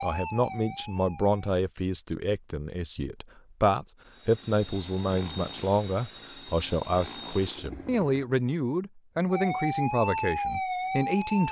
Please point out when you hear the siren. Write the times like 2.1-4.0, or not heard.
0.0-1.4, 9.3-11.4.